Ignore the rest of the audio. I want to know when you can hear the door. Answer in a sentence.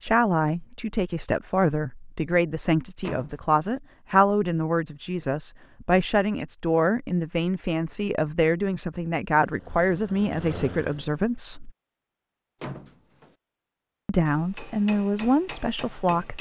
The door can be heard from 3.0 to 3.8 s and from 12.6 to 13.3 s.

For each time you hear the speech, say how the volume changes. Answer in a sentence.
The speech can be heard from 0.0 to 11.7 s, at a steady volume; and briefly from 14.1 to 16.3 s.